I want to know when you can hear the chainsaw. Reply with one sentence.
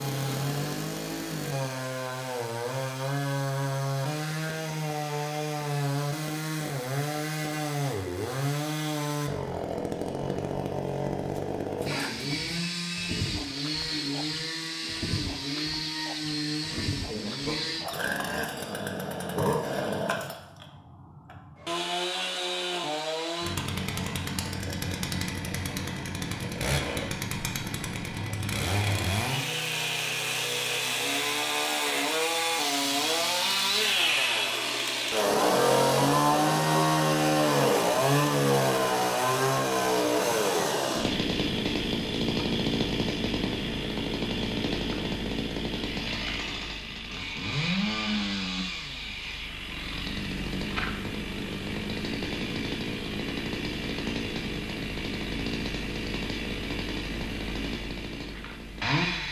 The chainsaw can be heard from 0.0 to 59.2 s.